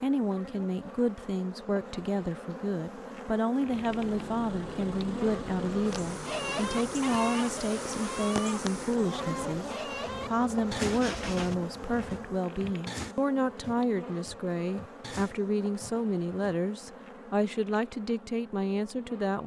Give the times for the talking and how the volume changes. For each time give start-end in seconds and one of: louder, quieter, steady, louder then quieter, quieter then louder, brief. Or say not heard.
0.0-19.4 steady.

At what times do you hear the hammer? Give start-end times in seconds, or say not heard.
not heard.